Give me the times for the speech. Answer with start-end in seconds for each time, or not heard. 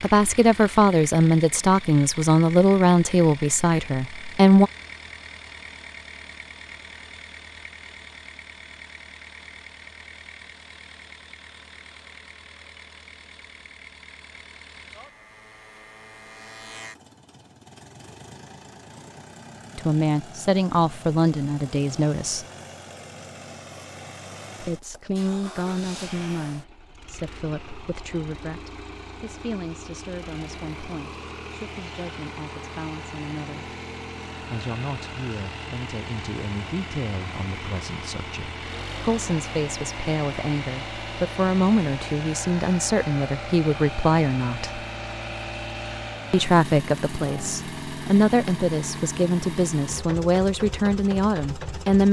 0.0-4.7, 19.8-22.4, 24.6-33.7, 34.4-44.9, 46.3-52.0.